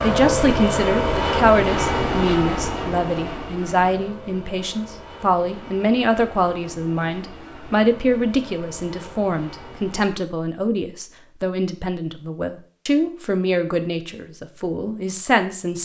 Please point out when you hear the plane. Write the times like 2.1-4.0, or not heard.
0.0-10.2.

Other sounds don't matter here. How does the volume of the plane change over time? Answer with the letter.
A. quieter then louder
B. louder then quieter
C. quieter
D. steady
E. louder
C.